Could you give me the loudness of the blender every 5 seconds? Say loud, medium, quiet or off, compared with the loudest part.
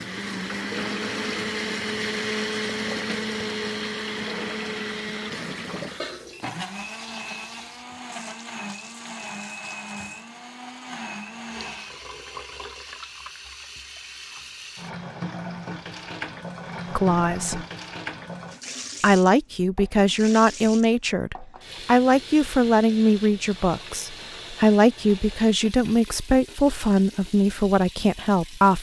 loud, medium, medium, off, off, off.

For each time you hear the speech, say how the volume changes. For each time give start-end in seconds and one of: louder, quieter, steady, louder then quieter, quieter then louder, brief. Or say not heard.
16.9-17.6 brief
19.0-28.7 steady.